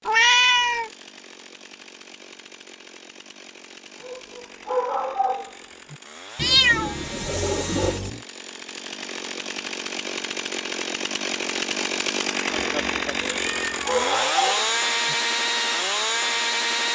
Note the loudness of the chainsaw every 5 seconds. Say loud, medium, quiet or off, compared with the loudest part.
quiet, quiet, loud, loud.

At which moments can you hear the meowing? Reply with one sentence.
You can hear the meowing from 0.1 to 0.9 s, from 6.3 to 8.2 s and from 12.5 to 14.1 s.